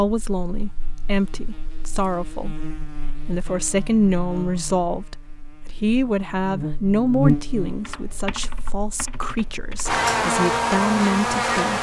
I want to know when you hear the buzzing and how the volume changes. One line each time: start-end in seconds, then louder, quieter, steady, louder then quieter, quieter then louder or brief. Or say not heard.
0.0-11.7 louder.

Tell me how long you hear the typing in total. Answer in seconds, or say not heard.
2 s.